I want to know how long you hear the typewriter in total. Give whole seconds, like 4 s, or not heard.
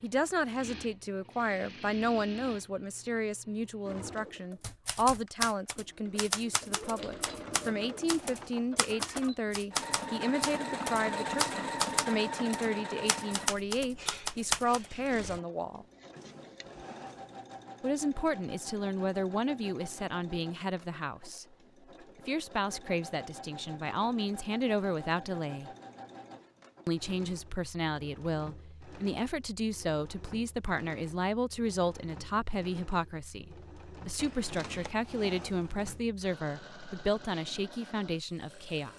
10 s.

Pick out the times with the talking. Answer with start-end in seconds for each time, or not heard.
0.0-15.8, 17.8-21.4, 22.1-25.7, 26.9-38.9.